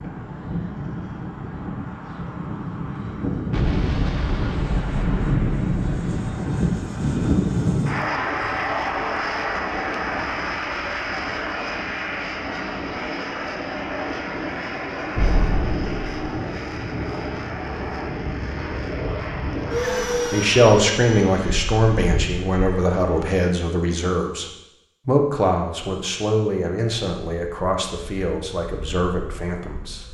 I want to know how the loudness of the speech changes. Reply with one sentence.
The loudness of the speech goes down.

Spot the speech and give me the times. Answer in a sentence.
You can hear the speech from 20.3 to 30.1 s.